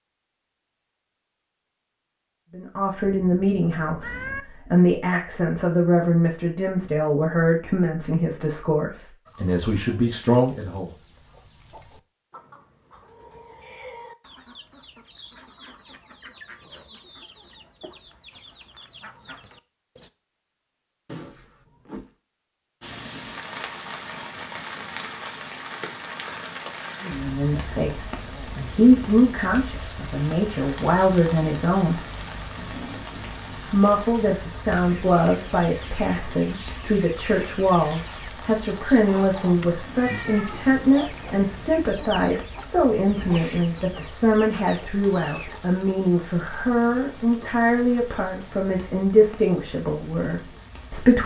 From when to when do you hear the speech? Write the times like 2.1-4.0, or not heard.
2.5-10.9, 27.0-32.0, 33.6-51.2.